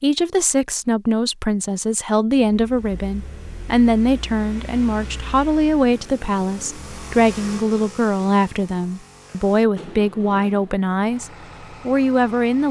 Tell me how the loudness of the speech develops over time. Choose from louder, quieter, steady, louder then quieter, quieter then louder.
steady.